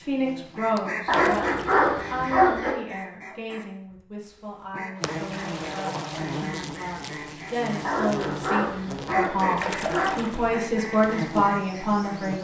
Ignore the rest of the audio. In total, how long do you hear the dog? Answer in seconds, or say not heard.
4 s.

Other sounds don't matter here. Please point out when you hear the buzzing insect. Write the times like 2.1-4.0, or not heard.
0.0-2.4, 5.0-12.4.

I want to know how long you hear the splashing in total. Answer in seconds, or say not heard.
3 s.